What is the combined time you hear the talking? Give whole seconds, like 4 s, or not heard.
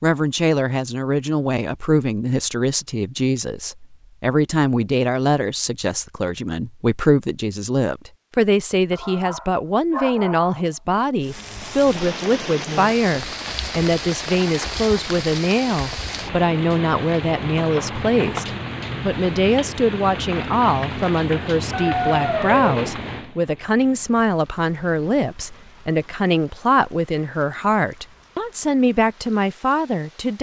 30 s.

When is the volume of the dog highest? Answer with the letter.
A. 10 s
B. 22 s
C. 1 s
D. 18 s
B.